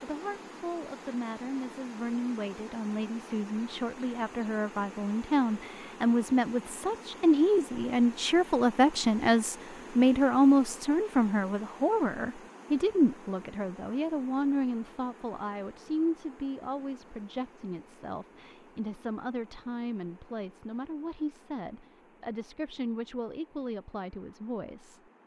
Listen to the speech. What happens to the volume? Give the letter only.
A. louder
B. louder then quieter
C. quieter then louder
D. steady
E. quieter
B.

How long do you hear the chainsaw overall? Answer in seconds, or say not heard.
not heard.